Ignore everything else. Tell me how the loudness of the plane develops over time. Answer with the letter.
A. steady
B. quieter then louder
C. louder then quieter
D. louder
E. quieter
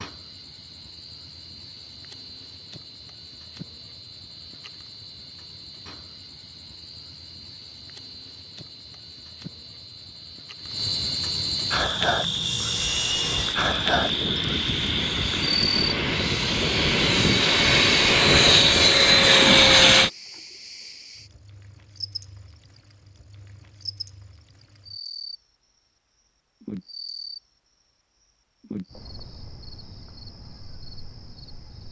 D.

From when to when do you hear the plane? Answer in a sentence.
You can hear the plane from 11.7 to 20.1 s.